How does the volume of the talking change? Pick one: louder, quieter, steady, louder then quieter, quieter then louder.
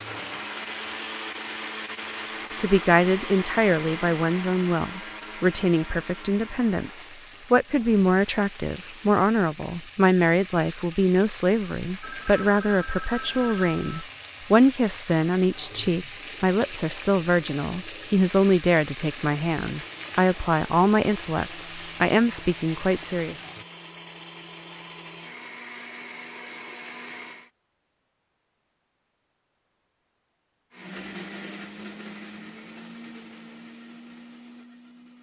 steady.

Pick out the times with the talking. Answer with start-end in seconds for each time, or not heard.
2.5-23.4.